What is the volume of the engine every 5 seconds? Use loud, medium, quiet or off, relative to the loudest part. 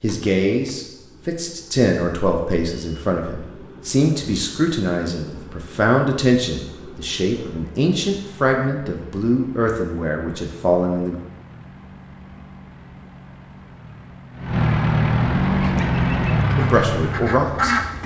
quiet, quiet, medium, loud.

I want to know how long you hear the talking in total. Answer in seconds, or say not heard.
12 s.